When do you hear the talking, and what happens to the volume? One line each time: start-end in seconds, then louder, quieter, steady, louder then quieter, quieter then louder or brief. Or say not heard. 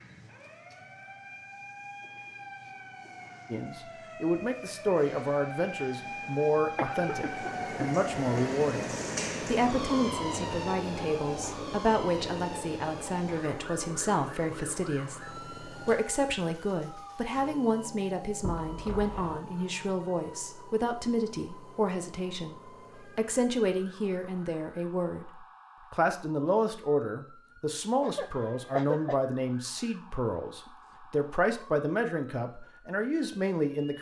3.5-33.9 steady.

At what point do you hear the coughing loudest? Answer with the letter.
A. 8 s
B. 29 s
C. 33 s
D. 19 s
B.